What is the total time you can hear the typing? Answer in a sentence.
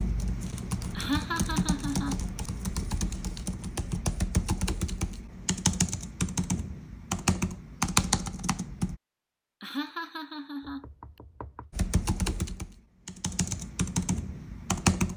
The typing can be heard for 12 seconds in total.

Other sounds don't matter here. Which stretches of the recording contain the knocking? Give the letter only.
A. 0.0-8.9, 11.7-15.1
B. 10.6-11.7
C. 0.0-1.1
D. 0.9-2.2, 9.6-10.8
B.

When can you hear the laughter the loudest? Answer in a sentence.
The loudest moment of the laughter is at 1 second.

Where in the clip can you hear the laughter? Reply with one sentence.
The laughter can be heard from 0.9 to 2.2 s and from 9.6 to 10.8 s.